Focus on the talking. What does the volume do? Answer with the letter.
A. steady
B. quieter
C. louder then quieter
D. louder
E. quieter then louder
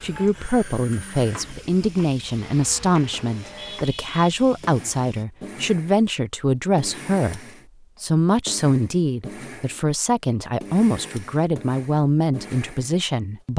A.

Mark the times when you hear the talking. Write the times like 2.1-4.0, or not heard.
0.0-7.4, 8.0-13.5.